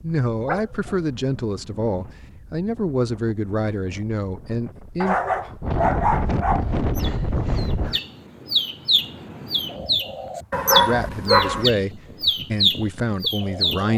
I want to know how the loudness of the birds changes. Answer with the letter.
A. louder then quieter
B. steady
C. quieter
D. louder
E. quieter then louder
D.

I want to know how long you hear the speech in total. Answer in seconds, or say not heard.
8 s.